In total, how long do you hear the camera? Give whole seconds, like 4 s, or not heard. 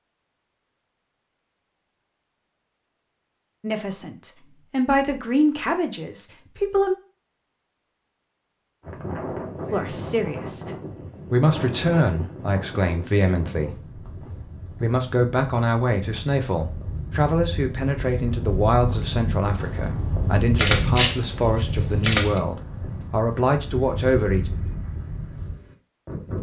2 s.